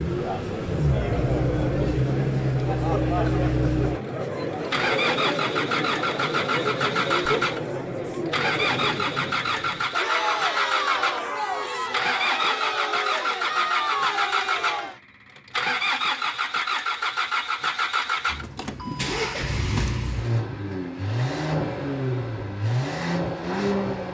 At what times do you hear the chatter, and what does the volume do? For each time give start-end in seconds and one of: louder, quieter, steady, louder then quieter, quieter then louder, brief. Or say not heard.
0.0-15.0 steady.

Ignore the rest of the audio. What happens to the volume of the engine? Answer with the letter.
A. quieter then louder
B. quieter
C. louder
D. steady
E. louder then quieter
D.